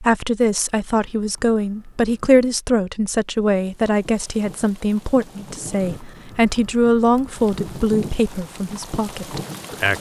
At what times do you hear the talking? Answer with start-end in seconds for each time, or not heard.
0.0-9.9.